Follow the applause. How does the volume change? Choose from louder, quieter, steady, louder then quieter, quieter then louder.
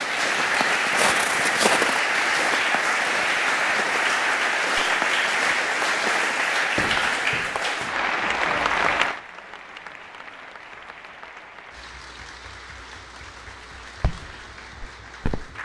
quieter.